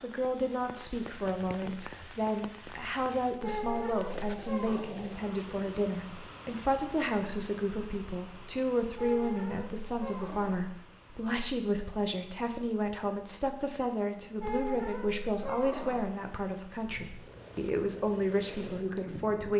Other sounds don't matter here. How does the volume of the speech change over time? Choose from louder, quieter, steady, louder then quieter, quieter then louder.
steady.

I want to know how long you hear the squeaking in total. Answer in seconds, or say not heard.
5 s.